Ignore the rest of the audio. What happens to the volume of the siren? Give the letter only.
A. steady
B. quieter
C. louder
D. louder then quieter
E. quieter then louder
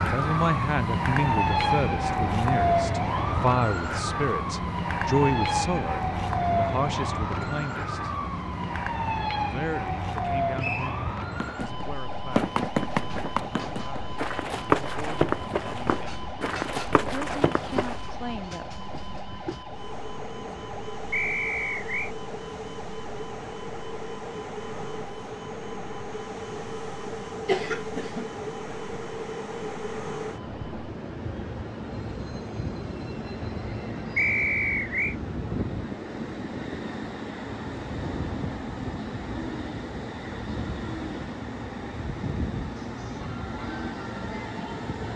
B.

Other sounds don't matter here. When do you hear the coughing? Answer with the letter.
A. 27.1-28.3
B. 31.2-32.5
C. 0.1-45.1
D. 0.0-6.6
A.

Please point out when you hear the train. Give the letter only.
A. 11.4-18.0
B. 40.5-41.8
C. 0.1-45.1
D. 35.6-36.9
C.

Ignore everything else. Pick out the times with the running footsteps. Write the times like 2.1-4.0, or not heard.
11.4-18.0.